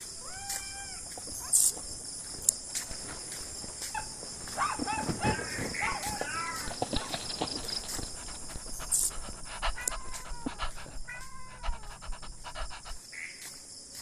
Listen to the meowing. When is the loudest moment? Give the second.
6 s.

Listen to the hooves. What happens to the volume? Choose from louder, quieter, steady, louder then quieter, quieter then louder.
louder then quieter.